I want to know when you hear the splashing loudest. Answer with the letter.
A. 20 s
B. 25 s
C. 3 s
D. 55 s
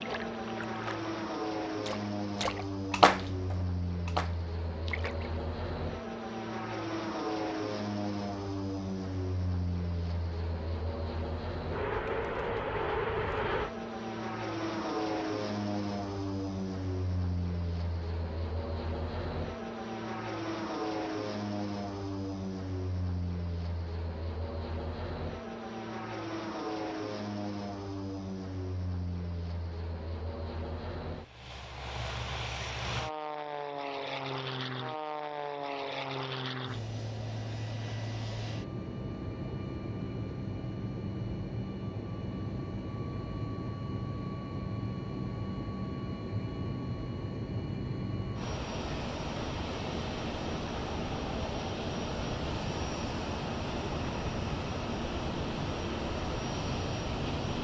C.